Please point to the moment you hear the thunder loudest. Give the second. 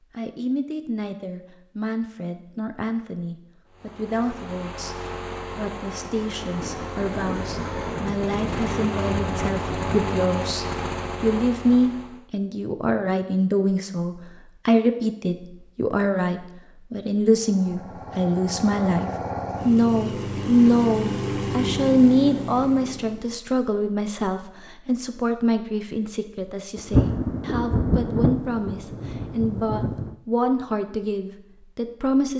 27 s.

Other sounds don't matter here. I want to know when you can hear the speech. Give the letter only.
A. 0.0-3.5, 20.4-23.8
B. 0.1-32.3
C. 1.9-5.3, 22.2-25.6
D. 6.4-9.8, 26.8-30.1
B.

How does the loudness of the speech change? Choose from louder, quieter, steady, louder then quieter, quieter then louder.
louder then quieter.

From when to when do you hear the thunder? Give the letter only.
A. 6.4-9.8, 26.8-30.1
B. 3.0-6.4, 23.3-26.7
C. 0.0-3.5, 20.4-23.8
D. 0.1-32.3
A.